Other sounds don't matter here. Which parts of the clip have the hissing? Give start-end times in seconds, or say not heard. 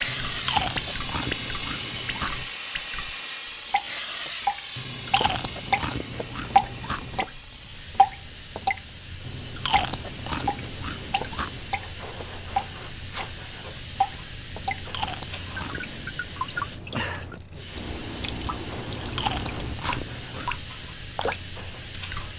0.0-22.3.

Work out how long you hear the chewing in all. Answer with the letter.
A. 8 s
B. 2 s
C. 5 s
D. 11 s
D.